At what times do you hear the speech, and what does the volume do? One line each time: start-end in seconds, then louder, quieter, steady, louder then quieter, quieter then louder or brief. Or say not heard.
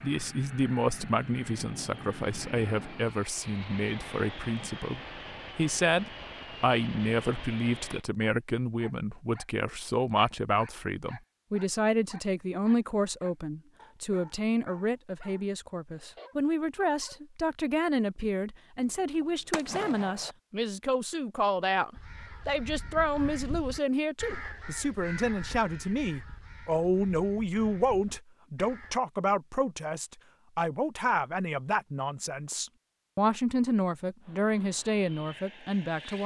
0.0-36.2 steady.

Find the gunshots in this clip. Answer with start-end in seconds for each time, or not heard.
18.8-20.4.